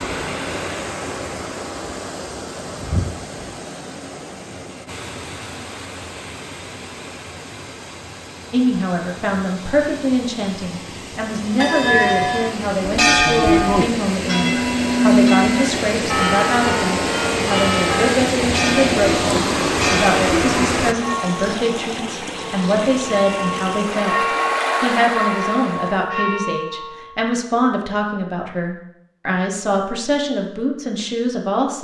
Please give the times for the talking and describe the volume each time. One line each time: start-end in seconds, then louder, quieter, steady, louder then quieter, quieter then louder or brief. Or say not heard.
8.5-31.8 steady.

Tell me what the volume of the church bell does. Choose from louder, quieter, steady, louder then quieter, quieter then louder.
quieter.